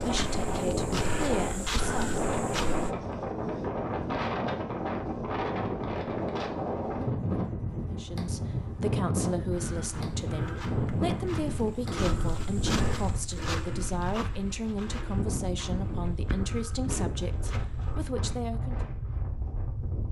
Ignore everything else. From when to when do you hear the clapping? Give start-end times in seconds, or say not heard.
not heard.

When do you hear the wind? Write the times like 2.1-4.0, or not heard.
0.0-20.0.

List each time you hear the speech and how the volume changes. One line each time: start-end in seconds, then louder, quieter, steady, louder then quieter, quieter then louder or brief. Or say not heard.
0.0-2.2 brief
7.9-18.8 steady.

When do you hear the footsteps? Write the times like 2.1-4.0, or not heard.
0.0-3.0, 9.5-18.0.